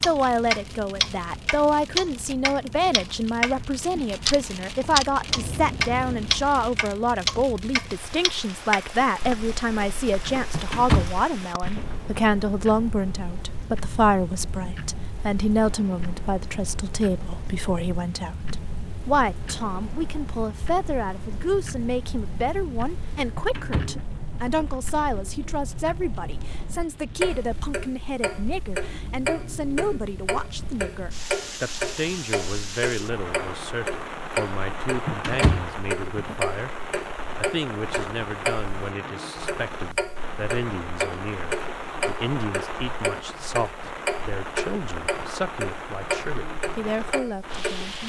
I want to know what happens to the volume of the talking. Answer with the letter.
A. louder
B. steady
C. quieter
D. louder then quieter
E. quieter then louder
C.